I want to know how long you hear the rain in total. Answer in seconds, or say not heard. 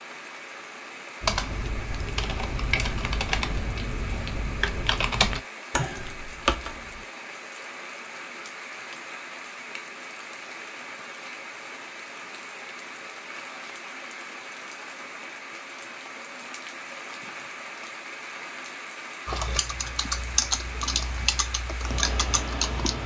23 s.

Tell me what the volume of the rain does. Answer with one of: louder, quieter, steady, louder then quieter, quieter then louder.
steady.